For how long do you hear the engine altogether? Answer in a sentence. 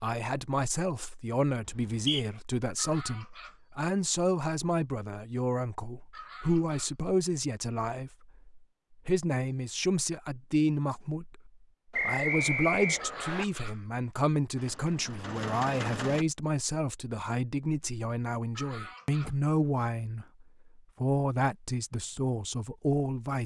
You can hear the engine for 2 seconds altogether.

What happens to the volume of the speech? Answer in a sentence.
The loudness of the speech stays about the same.